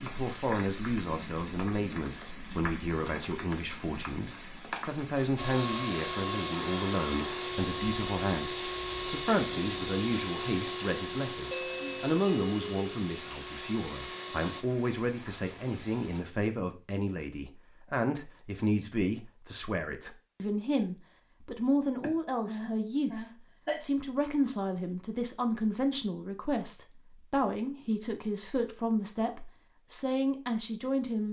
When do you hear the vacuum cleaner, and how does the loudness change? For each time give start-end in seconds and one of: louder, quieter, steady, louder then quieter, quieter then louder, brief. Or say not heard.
5.3-14.7 quieter.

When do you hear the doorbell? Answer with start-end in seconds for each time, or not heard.
11.5-13.0.